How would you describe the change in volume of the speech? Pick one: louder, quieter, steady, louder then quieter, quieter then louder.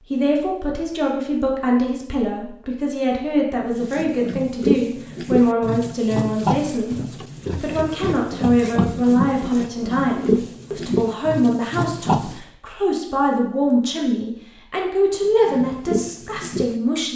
steady.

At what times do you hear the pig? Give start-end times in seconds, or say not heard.
3.8-12.4, 15.2-17.1.